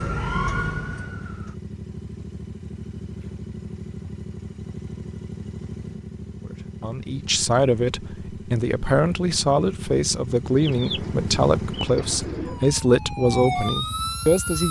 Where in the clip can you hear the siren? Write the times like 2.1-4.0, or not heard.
0.0-1.6, 12.4-14.6.